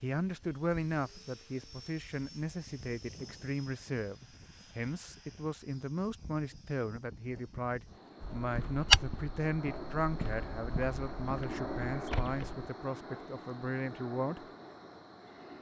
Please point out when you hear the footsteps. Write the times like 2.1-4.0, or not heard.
8.2-12.7.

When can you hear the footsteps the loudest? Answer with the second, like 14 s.
9 s.